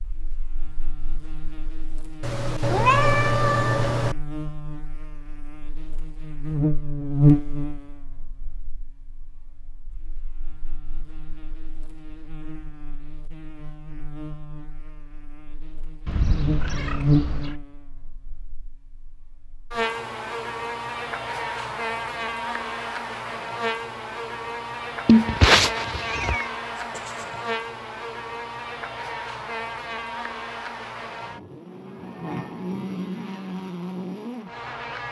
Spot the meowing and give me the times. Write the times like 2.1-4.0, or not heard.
2.2-4.2, 16.1-17.6, 25.1-27.0.